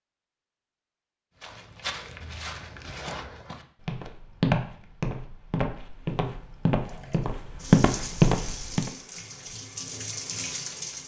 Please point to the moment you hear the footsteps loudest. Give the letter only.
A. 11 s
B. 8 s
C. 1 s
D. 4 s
B.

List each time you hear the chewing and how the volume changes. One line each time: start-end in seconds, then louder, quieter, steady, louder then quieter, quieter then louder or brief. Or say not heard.
not heard.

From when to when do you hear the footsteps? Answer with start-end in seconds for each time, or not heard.
1.4-8.9.